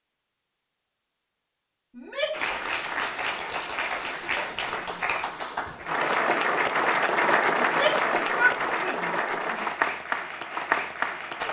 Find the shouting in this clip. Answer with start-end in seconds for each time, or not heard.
1.9-2.5, 7.6-9.7.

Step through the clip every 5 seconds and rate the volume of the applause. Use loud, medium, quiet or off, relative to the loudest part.
medium, loud, loud.